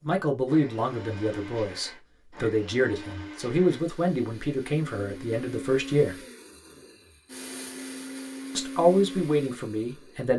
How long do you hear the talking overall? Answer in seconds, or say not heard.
8 s.